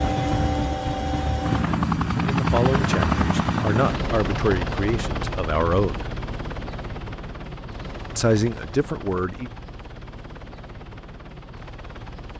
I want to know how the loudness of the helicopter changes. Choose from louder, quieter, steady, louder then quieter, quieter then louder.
quieter.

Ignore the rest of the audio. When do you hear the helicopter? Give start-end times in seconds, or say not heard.
0.0-12.3.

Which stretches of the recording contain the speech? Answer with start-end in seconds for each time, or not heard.
2.1-6.0, 8.2-9.5.